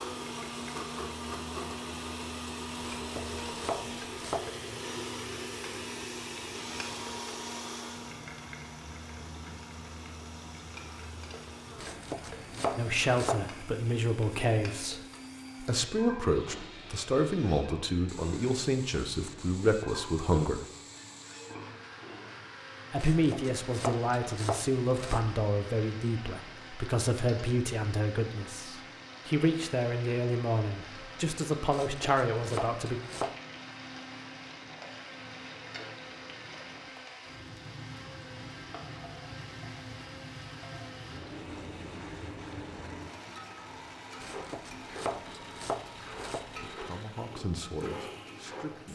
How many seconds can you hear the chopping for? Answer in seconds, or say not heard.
10 s.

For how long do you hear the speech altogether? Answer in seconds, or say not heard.
20 s.